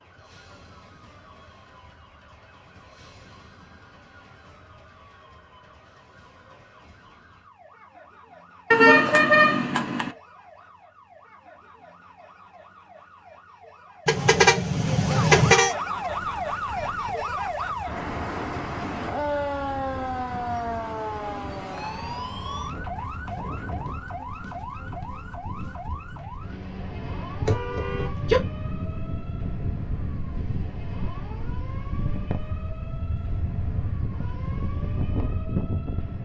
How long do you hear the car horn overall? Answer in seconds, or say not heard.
4 s.